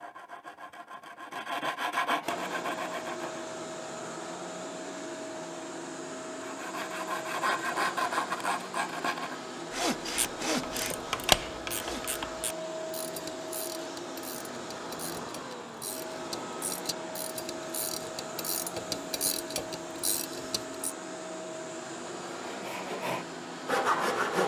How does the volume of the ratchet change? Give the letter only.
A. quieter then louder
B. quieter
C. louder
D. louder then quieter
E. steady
A.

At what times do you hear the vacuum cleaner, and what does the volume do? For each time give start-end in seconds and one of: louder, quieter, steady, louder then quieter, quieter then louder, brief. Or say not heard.
2.2-24.4 steady.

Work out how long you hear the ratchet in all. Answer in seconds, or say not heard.
11 s.